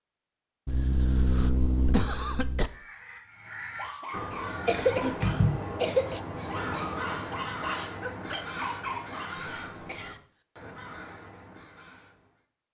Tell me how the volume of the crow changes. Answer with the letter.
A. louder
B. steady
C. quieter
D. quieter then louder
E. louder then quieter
E.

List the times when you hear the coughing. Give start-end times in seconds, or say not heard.
0.7-2.7, 4.7-6.2, 9.8-10.8.